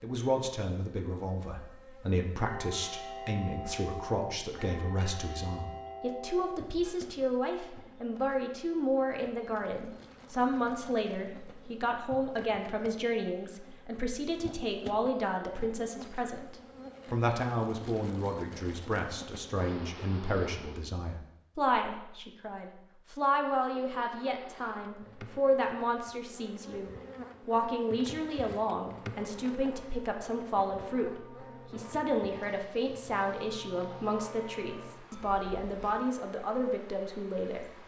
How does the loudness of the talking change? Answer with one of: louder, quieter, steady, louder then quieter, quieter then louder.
steady.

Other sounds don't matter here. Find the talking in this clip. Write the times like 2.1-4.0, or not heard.
0.0-37.8.